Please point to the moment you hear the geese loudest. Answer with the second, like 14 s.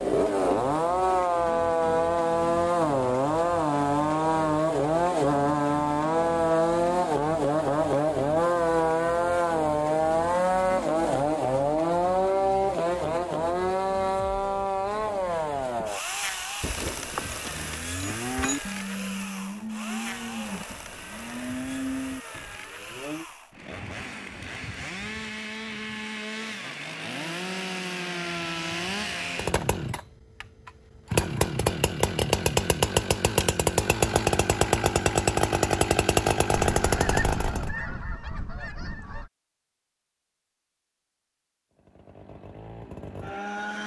37 s.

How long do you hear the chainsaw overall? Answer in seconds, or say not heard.
40 s.